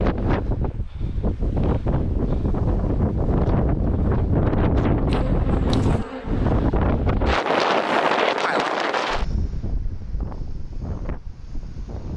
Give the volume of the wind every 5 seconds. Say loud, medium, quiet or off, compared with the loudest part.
loud, loud, quiet.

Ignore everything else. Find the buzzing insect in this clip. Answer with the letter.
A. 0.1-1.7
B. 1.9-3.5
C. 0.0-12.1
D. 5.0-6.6
D.